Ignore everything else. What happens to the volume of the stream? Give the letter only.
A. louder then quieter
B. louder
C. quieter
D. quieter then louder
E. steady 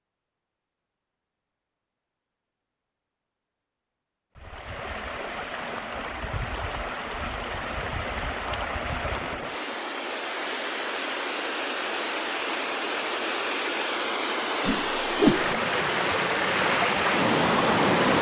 B.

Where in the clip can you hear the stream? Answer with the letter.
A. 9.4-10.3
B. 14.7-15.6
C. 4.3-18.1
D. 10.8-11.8
C.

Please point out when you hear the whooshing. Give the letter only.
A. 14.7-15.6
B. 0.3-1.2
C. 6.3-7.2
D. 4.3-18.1
A.